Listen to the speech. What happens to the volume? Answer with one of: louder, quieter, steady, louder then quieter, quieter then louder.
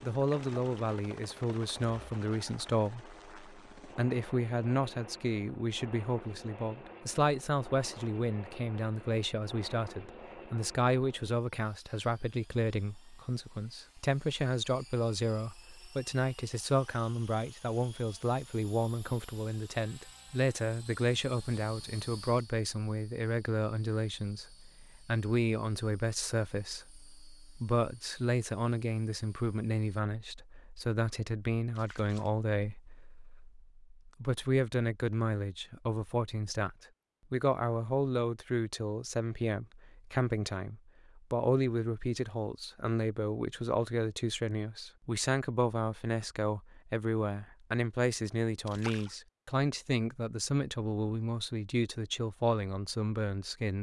steady.